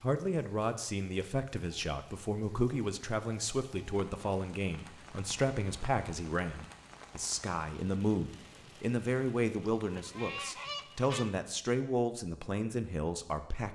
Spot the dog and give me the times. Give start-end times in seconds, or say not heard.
not heard.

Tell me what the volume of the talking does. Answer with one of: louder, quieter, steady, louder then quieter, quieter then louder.
steady.